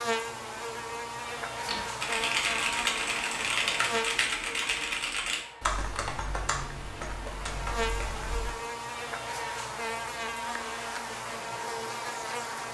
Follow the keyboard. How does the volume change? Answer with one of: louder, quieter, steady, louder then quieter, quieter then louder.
quieter.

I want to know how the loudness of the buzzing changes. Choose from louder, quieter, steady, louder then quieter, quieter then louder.
quieter then louder.